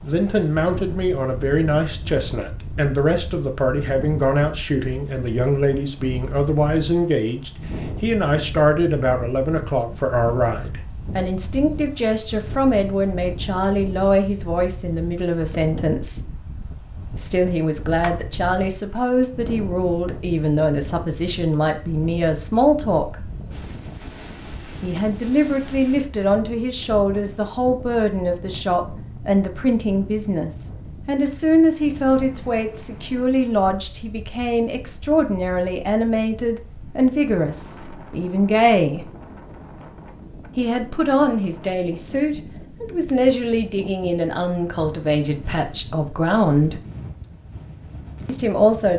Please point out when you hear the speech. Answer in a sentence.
The speech can be heard from 0.0 to 16.4 s, from 17.1 to 23.2 s, from 24.8 to 39.0 s, from 40.5 to 46.8 s and from 48.2 to 48.9 s.